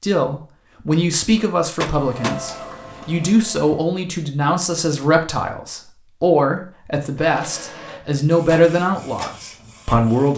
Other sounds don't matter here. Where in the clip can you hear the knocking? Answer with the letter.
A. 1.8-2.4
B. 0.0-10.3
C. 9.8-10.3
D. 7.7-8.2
A.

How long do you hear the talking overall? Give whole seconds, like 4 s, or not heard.
10 s.